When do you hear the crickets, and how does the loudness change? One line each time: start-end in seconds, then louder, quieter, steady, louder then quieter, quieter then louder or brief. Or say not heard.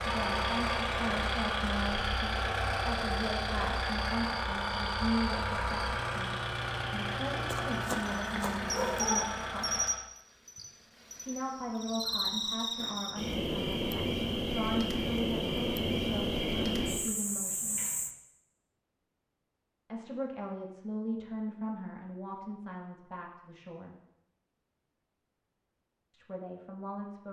0.0-18.1 louder.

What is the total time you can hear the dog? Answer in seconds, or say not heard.
2 s.